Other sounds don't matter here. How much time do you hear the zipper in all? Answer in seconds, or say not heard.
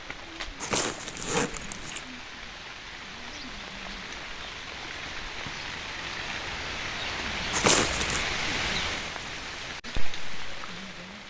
2 s.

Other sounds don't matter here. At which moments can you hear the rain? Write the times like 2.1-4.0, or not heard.
0.0-11.2.